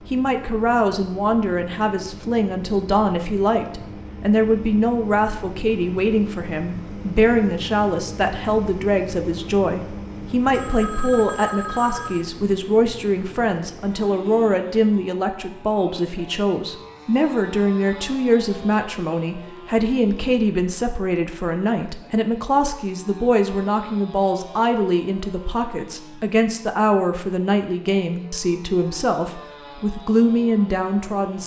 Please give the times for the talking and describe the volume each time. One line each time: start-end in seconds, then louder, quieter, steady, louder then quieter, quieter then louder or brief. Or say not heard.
0.1-31.4 steady.